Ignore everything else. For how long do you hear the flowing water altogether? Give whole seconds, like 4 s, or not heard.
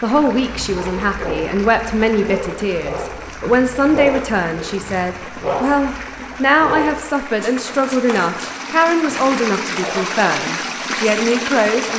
12 s.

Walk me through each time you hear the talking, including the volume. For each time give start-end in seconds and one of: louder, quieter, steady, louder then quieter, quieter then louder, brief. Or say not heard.
0.0-11.9 steady.